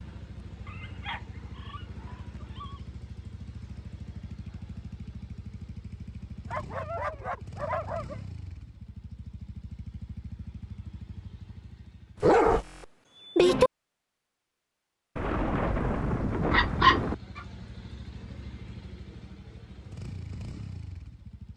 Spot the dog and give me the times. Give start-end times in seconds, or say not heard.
0.7-2.8, 6.5-8.2, 12.2-13.7, 16.5-17.4.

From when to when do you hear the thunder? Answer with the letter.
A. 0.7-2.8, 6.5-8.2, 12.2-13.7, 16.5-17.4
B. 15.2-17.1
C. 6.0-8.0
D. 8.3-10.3
B.